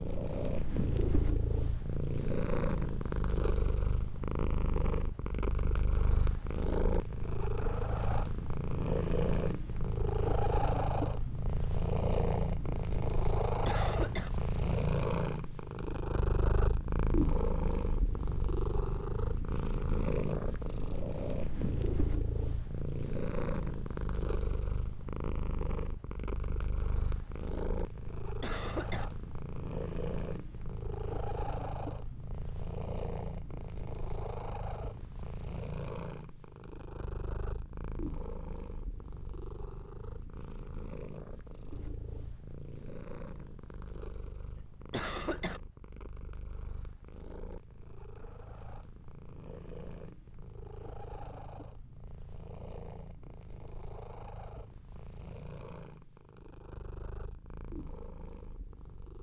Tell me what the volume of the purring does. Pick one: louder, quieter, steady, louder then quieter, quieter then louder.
quieter.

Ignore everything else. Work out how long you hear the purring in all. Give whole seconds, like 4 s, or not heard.
59 s.